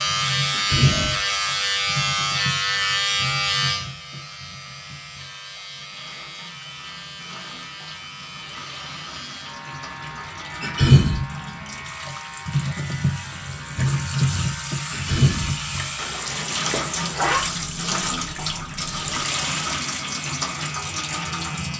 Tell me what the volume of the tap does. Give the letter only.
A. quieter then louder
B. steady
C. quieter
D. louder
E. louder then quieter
A.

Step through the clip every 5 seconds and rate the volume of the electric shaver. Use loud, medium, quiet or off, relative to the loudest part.
loud, quiet, quiet, quiet, quiet.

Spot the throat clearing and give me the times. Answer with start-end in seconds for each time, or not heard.
0.5-1.1, 10.6-11.2, 14.9-15.6.